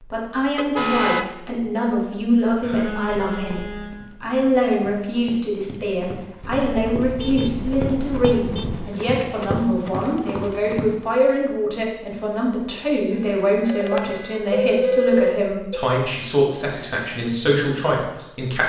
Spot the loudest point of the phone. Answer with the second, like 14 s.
15 s.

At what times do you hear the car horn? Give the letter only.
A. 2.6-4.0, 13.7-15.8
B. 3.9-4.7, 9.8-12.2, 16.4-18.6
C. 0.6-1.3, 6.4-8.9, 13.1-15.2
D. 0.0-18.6
C.